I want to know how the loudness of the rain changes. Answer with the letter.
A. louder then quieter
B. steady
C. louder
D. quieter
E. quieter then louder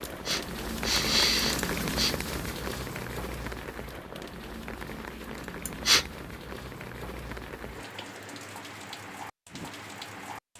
D.